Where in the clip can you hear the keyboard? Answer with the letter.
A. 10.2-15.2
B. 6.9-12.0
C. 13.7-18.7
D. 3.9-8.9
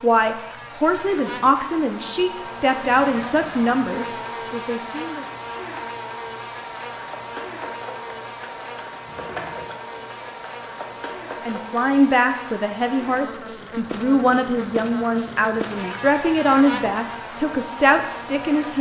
B.